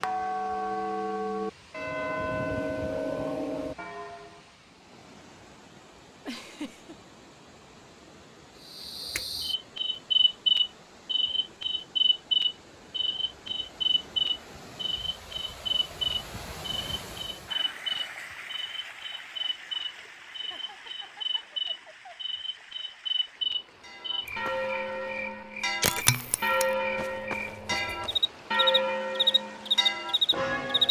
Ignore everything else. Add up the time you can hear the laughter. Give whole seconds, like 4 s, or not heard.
2 s.